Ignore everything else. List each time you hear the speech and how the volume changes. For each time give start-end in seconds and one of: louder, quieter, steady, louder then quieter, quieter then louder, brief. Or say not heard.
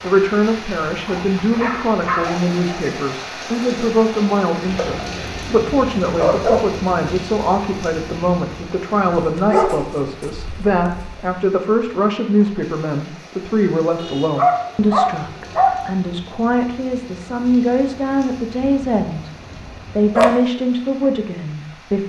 0.0-19.3 steady
19.9-22.0 brief.